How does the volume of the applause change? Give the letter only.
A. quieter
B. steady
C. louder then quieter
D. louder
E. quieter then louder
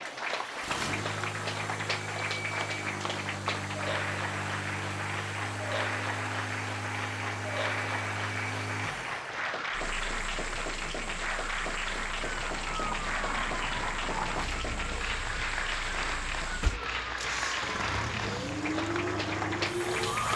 B.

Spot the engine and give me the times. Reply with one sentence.
You can hear the engine from 0.0 to 20.3 s.